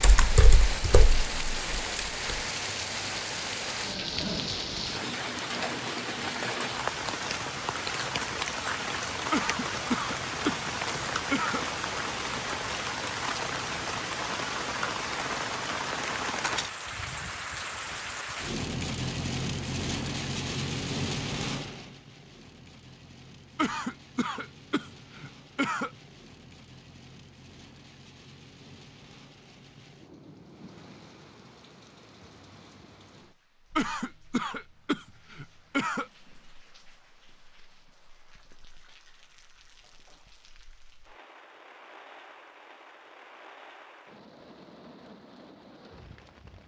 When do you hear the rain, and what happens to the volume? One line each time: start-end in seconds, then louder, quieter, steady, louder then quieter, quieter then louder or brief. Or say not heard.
0.0-46.6 quieter.